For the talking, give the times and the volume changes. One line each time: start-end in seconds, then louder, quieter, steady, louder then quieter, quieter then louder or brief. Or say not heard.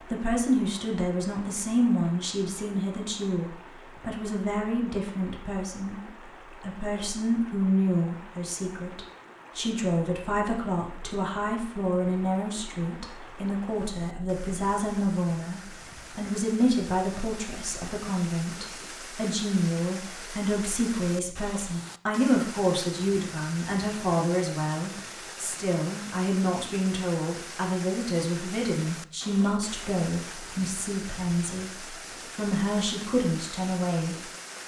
0.1-34.1 steady.